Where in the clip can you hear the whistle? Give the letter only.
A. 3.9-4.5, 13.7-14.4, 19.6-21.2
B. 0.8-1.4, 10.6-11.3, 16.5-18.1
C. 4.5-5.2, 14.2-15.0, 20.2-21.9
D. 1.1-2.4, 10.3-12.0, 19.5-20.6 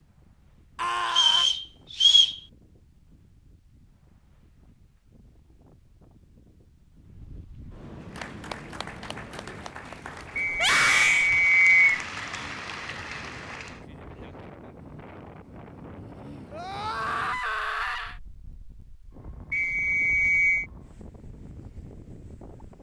D.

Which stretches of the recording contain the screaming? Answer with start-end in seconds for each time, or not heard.
0.8-1.4, 10.6-11.3, 16.5-18.1.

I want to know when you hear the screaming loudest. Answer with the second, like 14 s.
11 s.